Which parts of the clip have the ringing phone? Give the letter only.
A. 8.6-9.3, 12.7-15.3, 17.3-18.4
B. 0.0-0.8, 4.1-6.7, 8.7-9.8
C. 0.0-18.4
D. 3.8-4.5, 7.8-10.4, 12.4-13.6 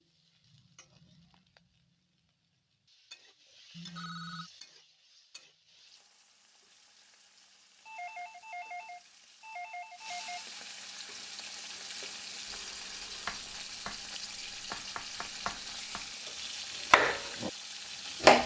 D.